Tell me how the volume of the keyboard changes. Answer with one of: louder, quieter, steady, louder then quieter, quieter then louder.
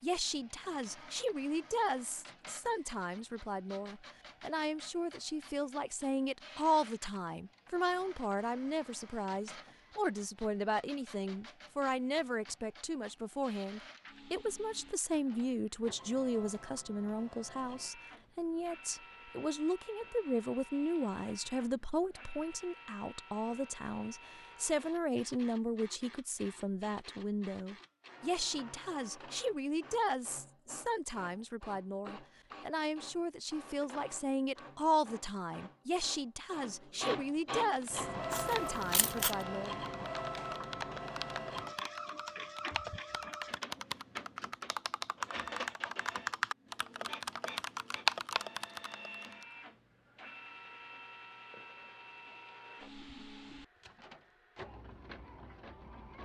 louder.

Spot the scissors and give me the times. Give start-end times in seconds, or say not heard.
38.3-39.4.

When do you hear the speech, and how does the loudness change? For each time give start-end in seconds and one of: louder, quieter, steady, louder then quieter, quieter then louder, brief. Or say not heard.
0.0-39.8 steady.